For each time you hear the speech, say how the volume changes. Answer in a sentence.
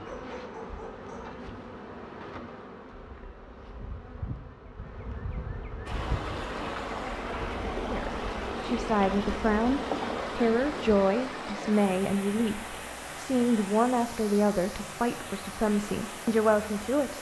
The speech can be heard from 7.8 to 17.1 s, at a steady volume.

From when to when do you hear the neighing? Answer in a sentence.
The neighing can't be heard in this clip.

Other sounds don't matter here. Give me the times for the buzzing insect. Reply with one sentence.
The buzzing insect can be heard from 0.0 to 11.1 s.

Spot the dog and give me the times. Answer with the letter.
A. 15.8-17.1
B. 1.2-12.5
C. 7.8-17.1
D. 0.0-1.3
D.